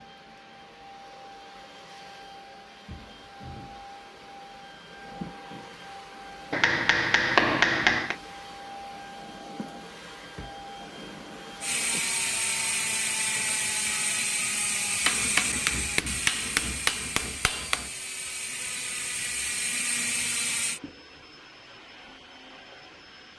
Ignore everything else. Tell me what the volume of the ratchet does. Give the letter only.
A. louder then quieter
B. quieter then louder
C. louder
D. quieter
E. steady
B.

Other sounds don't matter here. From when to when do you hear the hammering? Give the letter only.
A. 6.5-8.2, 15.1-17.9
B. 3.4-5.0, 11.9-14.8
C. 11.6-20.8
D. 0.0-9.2
A.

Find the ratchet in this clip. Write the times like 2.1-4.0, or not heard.
11.6-20.8.